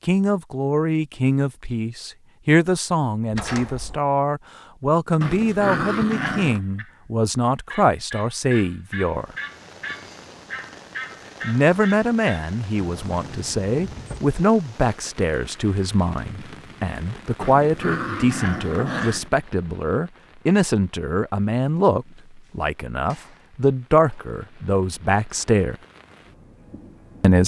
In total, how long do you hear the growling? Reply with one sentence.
The growling can be heard for 3 seconds in total.